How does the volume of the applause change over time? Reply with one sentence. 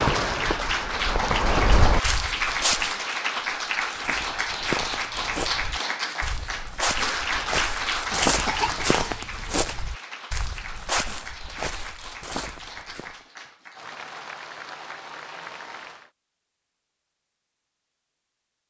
The volume of the applause goes down.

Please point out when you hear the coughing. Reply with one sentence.
The coughing can be heard from 8.1 to 9.4 s.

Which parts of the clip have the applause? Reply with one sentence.
You can hear the applause from 0.0 to 16.1 s.